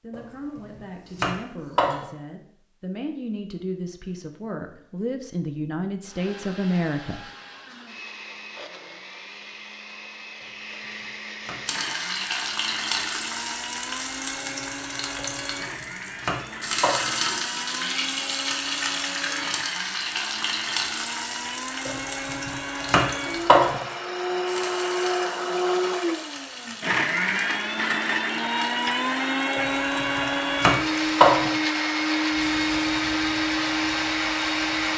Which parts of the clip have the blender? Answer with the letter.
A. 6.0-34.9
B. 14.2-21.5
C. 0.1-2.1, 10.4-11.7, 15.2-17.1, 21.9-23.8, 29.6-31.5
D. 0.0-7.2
A.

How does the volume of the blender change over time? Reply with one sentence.
The volume of the blender goes up.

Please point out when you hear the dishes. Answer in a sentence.
You can't hear the dishes here.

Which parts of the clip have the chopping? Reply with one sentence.
The chopping can be heard from 0.1 to 2.1 s, from 10.4 to 11.7 s, from 15.2 to 17.1 s, from 21.9 to 23.8 s and from 29.6 to 31.5 s.